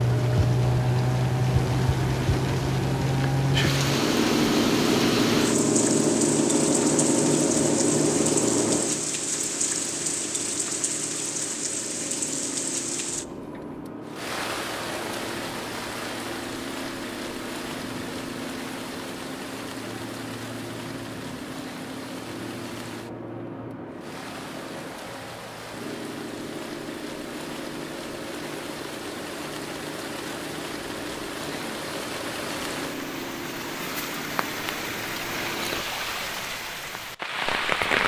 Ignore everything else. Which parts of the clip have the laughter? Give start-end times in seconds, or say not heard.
not heard.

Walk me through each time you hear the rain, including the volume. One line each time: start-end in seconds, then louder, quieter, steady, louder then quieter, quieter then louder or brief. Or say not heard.
0.0-38.0 quieter then louder.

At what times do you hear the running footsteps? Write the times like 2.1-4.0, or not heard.
not heard.